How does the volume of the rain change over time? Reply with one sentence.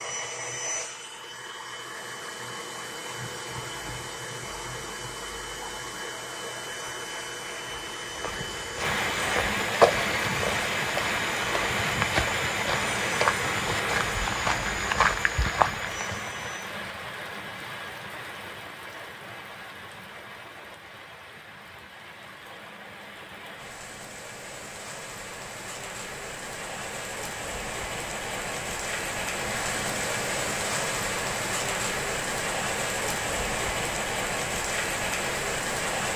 The loudness of the rain goes down, then up.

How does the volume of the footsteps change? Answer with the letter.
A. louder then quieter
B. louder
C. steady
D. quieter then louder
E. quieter
D.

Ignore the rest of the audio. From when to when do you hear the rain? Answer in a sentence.
The rain can be heard from 8.8 to 36.1 s.